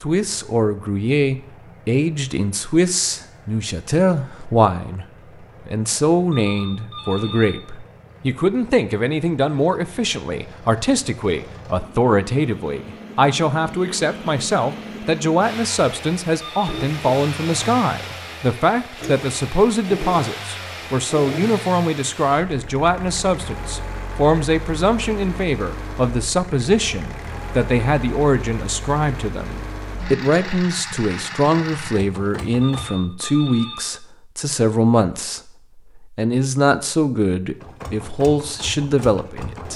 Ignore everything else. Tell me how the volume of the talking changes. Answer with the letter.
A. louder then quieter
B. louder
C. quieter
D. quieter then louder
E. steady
E.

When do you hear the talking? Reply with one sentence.
You can hear the talking from 0.0 to 5.0 s and from 5.7 to 39.7 s.